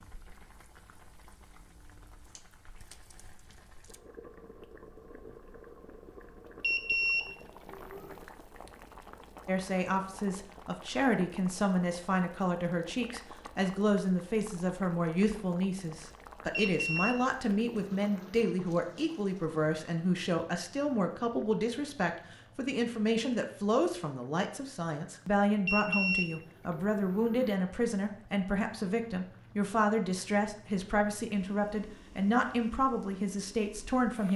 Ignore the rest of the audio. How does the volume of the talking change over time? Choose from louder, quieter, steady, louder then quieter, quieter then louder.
steady.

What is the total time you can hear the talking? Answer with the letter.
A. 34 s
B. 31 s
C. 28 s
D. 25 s
D.